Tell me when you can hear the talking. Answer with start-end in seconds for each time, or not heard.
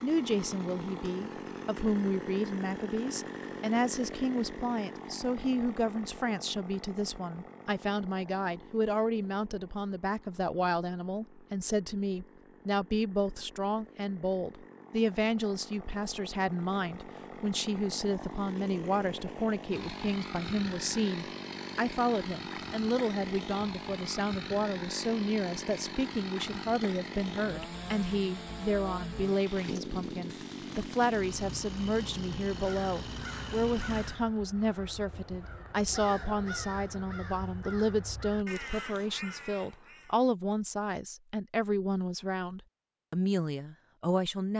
0.0-44.5.